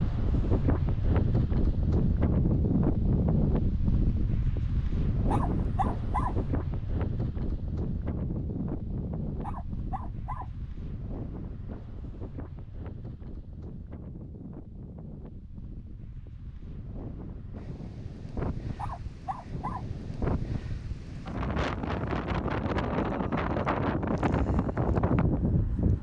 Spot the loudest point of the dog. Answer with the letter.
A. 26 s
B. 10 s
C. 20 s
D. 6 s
D.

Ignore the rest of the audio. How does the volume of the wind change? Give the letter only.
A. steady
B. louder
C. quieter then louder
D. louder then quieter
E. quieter
C.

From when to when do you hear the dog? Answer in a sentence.
The dog can be heard from 5.3 to 6.5 s, from 9.4 to 10.6 s and from 18.8 to 19.9 s.